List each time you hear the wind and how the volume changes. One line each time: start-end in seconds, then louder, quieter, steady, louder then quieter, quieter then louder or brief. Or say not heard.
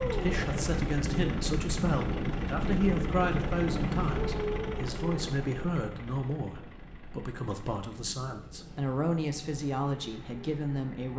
0.0-11.1 quieter.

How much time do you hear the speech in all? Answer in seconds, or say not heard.
11 s.